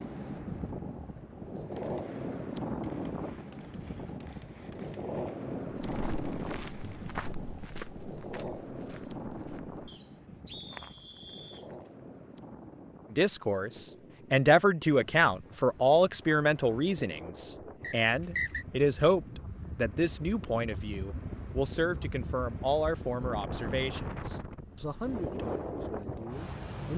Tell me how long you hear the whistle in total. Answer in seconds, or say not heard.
3 s.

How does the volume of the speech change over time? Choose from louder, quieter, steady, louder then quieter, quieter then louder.
quieter.